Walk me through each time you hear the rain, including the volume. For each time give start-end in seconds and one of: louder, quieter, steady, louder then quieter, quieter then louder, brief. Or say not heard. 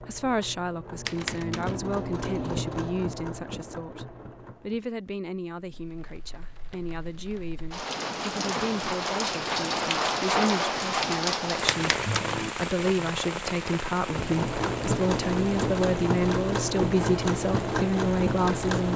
5.5-18.9 louder then quieter.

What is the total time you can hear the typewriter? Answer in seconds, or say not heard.
2 s.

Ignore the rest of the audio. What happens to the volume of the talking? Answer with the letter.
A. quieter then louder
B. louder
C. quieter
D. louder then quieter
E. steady
B.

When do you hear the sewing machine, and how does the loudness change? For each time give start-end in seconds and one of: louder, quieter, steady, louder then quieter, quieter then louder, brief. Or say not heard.
0.0-4.8 louder then quieter
14.0-18.9 steady.